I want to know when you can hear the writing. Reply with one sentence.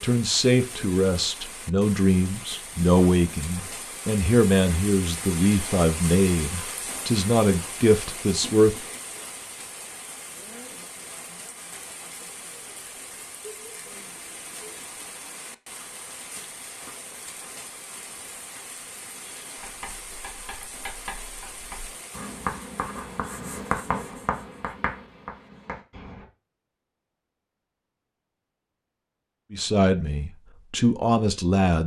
The writing can be heard from 19.6 to 26.2 s.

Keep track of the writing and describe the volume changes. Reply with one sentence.
The loudness of the writing goes up, then down.